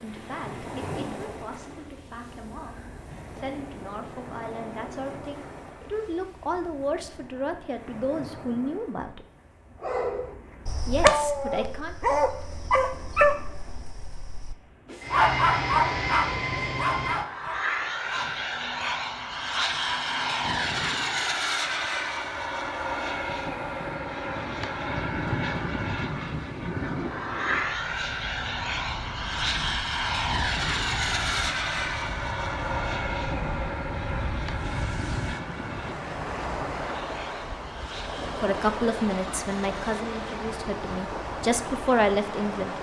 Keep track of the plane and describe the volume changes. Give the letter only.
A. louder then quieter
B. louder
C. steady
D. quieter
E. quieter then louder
D.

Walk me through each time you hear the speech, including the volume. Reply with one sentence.
You can hear the speech from 0.0 to 9.2 s, getting louder; briefly from 10.8 to 11.9 s; and from 38.4 to 42.7 s, getting quieter then louder.